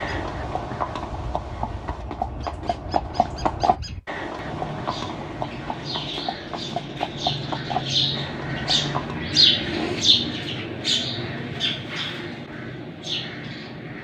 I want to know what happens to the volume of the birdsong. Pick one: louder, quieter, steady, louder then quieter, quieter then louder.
louder then quieter.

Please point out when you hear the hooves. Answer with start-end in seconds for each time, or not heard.
0.0-9.2.